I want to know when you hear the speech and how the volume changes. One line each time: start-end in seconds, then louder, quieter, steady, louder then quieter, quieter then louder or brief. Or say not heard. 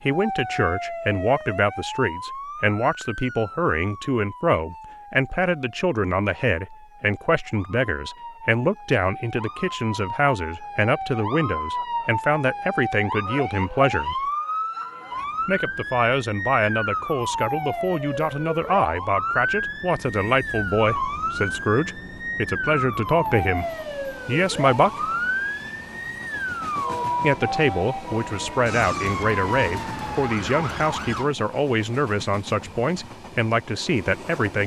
0.0-14.2 steady
15.4-23.6 steady
24.2-25.1 brief
27.2-34.6 steady.